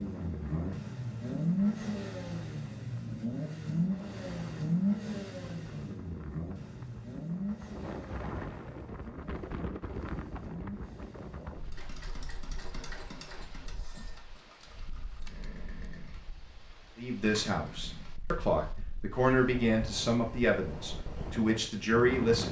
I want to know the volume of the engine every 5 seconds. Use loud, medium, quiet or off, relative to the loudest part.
loud, medium, quiet, quiet, quiet.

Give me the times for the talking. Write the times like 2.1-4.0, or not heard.
16.9-22.4.